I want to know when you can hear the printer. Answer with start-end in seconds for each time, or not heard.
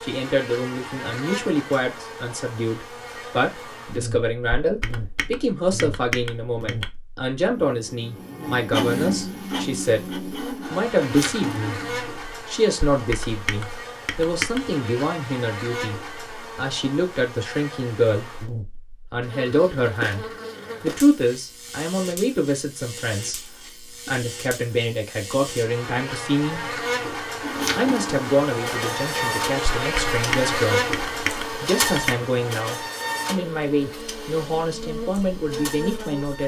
8.5-12.2, 27.4-36.4.